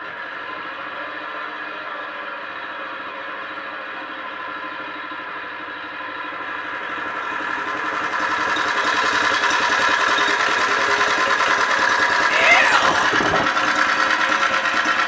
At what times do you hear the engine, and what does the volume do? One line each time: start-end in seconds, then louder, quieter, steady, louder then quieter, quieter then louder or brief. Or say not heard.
0.0-15.0 louder.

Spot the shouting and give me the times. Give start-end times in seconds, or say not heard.
12.2-13.2.